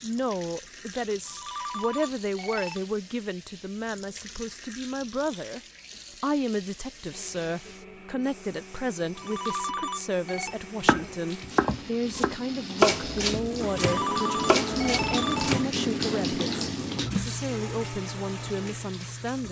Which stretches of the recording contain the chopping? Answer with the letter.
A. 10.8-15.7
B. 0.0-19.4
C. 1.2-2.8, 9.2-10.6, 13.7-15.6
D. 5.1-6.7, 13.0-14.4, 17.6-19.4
A.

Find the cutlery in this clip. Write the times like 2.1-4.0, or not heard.
not heard.